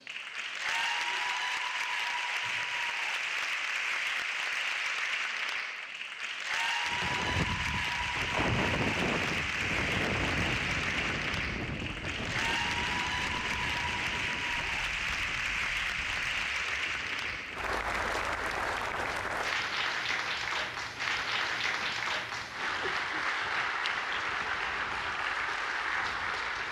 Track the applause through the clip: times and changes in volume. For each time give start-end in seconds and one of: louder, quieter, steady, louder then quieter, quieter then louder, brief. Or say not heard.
0.0-26.6 steady.